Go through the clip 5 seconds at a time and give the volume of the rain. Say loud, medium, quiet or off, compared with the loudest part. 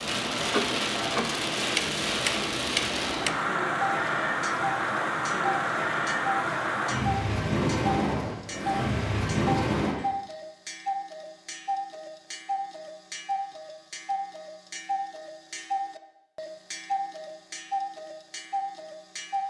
loud, loud, off, off.